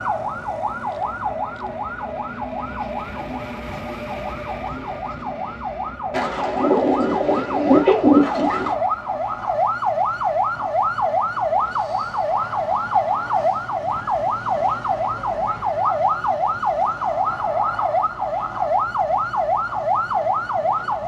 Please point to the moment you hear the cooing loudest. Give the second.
8 s.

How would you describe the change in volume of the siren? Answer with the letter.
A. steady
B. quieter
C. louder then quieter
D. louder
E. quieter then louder
D.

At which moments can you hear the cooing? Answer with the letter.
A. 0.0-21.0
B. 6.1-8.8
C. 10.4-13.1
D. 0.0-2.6
B.